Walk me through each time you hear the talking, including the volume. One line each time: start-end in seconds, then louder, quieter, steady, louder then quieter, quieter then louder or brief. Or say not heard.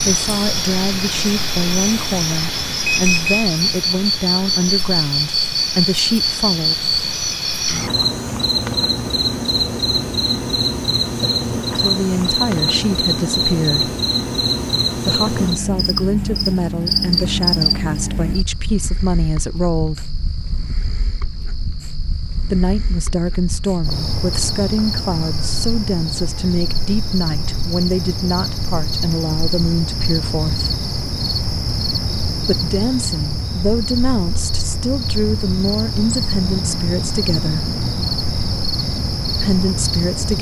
0.0-6.8 steady
11.8-13.9 brief
14.9-20.1 steady
22.4-30.8 steady
32.4-37.6 steady
39.4-40.3 brief.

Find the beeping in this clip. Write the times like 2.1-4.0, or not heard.
2.9-3.5.